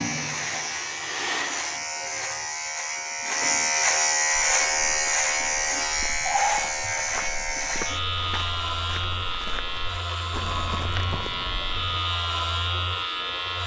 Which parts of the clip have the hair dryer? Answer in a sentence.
You can hear the hair dryer from 0.0 to 1.8 s.